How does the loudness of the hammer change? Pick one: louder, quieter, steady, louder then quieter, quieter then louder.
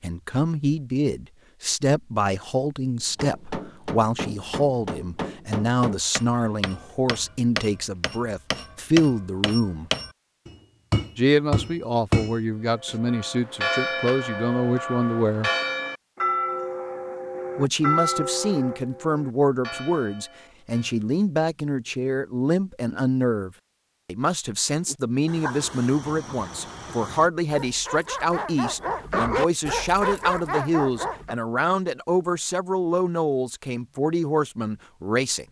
louder.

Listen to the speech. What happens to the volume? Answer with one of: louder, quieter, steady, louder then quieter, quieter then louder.
steady.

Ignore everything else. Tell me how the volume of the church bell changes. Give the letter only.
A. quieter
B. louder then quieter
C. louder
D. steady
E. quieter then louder
A.